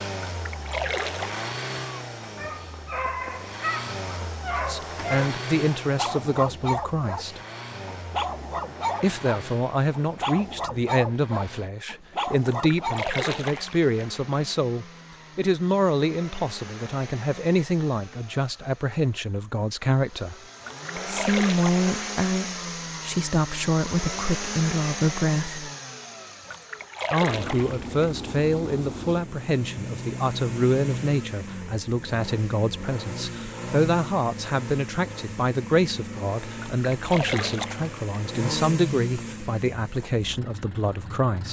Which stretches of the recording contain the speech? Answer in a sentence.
The speech can be heard from 4.7 to 7.4 s, from 9.0 to 20.4 s, from 21.1 to 25.6 s and from 27.1 to 41.4 s.